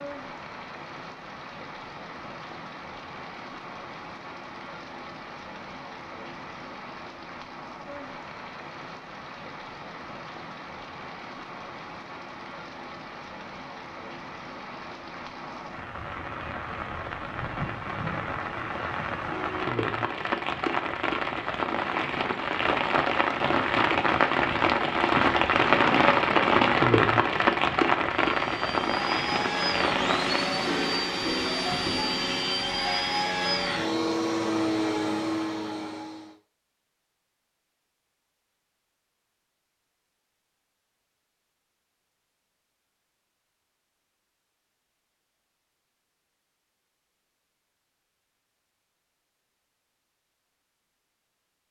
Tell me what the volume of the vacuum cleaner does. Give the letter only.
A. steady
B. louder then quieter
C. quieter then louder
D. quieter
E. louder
A.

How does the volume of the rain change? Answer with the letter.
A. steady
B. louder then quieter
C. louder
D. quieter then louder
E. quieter
C.